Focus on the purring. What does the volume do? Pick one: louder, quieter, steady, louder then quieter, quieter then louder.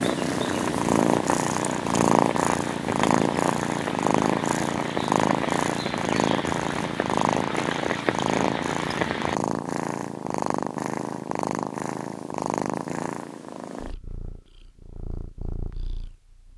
quieter.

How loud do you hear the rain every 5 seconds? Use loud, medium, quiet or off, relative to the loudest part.
loud, loud, off, off.